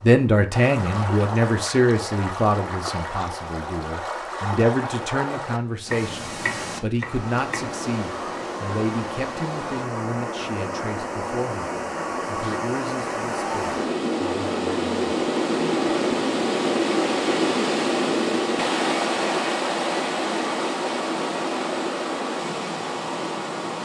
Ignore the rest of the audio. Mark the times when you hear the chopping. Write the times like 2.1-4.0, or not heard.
5.9-7.8.